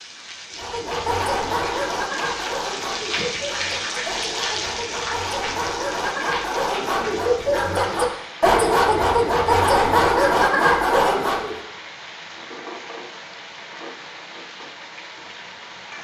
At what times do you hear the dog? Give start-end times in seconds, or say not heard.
0.6-11.6.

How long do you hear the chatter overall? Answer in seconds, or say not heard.
not heard.